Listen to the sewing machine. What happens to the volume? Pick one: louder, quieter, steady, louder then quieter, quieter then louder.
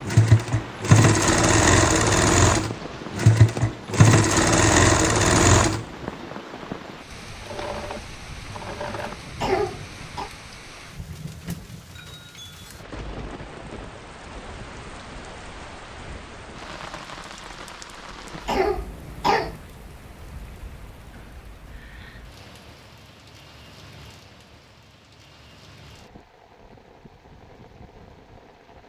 quieter.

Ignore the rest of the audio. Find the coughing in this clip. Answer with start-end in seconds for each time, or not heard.
9.4-10.3, 18.4-19.6.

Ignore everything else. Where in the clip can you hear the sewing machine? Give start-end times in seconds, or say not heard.
0.0-9.4.